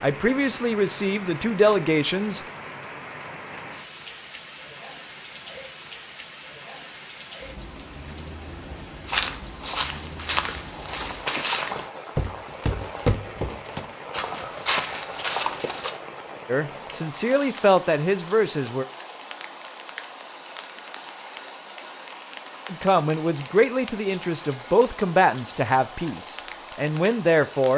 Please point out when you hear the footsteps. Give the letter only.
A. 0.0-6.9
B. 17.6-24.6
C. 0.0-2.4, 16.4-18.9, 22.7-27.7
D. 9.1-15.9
D.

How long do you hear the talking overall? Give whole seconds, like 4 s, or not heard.
10 s.